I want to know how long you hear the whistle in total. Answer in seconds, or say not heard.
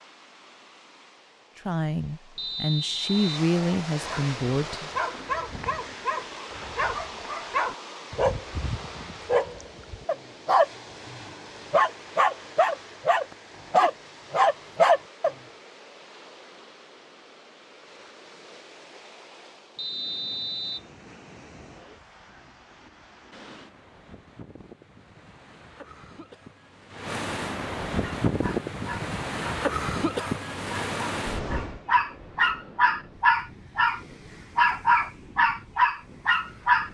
2 s.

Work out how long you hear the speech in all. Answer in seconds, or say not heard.
3 s.